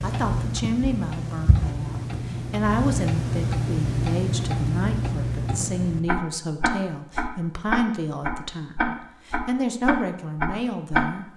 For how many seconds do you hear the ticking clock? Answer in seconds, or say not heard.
11 s.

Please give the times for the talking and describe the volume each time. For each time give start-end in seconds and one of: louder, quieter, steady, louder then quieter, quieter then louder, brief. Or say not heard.
0.0-11.3 steady.